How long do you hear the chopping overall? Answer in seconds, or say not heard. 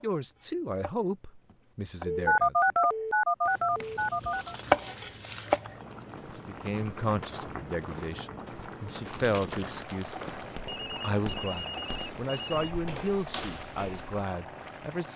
6 s.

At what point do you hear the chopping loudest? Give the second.
5 s.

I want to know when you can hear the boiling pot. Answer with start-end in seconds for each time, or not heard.
5.7-15.1.